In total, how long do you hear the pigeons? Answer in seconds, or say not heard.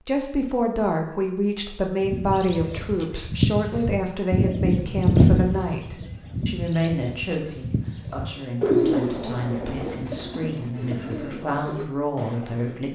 11 s.